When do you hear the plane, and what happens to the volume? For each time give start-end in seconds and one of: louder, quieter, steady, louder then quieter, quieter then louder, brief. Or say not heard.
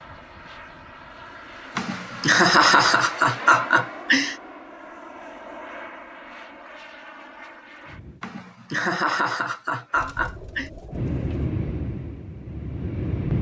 0.0-8.2 louder then quieter
10.9-13.3 brief.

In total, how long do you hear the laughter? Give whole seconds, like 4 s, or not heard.
5 s.